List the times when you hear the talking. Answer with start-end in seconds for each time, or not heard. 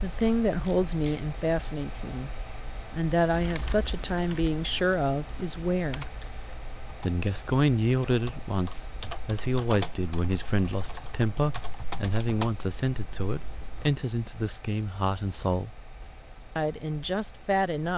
0.0-6.0, 7.0-15.8, 16.6-17.9.